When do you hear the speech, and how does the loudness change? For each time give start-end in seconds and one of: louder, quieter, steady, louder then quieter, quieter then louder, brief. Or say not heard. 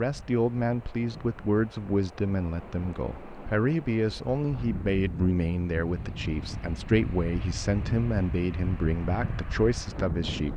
0.0-10.5 steady.